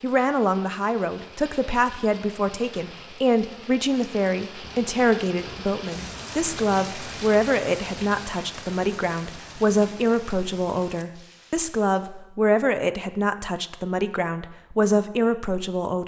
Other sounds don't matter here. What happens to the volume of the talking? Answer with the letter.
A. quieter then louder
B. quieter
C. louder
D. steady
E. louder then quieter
D.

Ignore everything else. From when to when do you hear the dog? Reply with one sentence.
You can't hear the dog here.